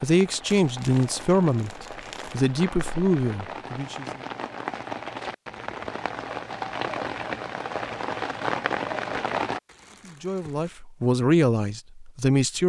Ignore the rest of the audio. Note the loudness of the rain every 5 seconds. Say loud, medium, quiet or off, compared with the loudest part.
medium, loud, off.